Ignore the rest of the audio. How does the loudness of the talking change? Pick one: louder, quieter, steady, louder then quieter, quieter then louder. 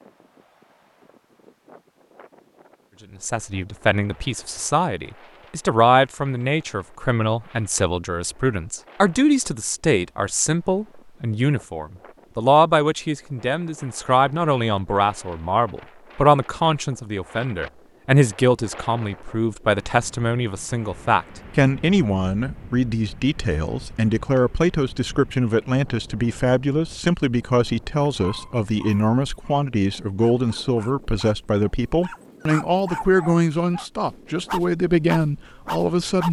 steady.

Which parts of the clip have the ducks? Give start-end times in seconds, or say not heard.
not heard.